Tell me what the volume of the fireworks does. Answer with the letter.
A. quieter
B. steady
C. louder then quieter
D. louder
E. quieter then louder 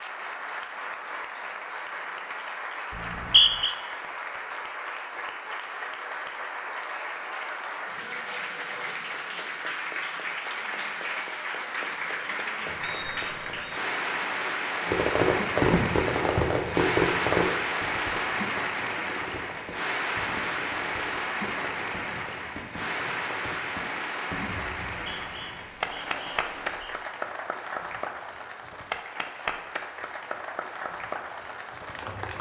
A.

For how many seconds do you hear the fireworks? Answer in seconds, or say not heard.
12 s.